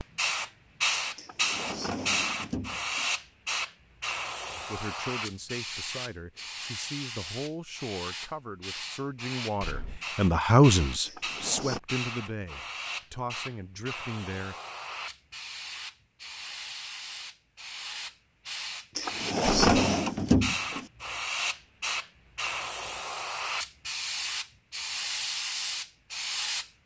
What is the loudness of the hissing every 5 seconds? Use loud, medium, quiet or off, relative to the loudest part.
loud, medium, medium, medium, loud, loud.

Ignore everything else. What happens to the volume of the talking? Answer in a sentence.
The loudness of the talking goes up, then down.